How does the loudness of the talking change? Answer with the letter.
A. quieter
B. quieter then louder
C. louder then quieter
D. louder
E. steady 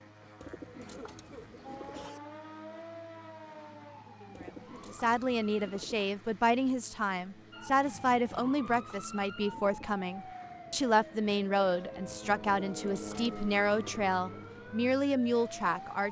E.